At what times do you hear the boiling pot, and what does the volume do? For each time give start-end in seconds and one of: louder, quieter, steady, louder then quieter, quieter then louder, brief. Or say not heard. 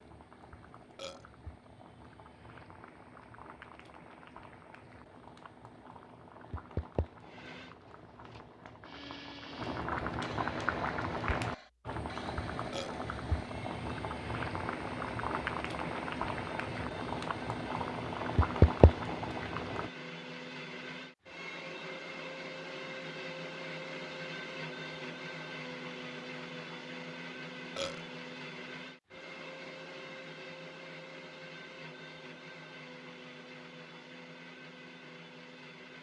0.0-19.9 louder.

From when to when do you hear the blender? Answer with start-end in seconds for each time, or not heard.
7.2-35.9.